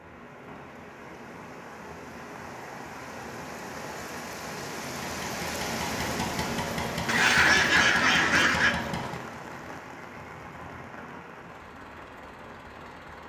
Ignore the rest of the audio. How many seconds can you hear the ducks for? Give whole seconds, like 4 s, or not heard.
2 s.